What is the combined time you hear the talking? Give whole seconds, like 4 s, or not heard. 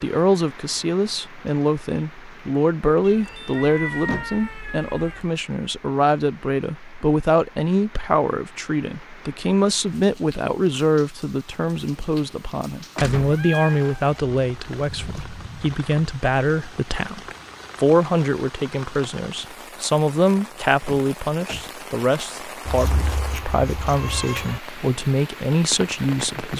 26 s.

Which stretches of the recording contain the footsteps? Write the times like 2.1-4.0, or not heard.
not heard.